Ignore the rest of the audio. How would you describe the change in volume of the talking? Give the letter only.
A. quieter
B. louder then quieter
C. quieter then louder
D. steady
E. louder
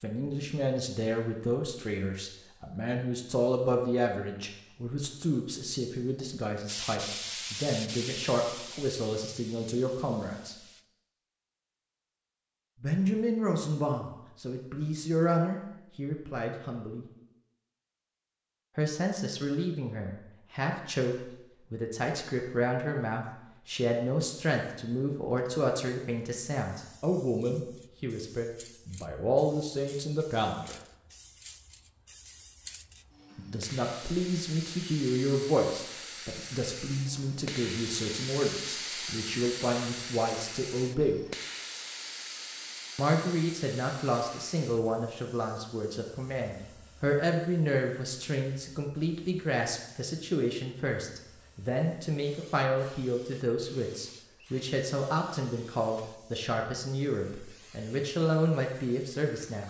D.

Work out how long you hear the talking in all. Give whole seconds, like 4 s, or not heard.
51 s.